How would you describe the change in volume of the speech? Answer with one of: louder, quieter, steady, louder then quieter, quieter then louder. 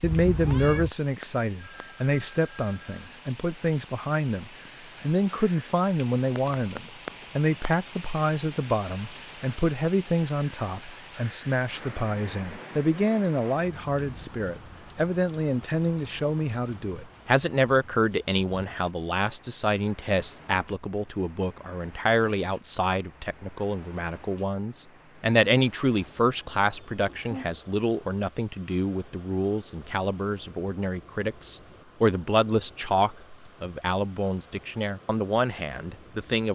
steady.